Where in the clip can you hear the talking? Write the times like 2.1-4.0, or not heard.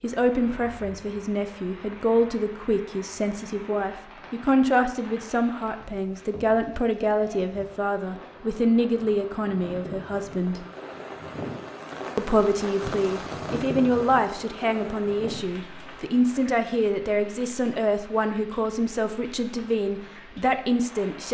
0.0-10.7, 12.2-21.2.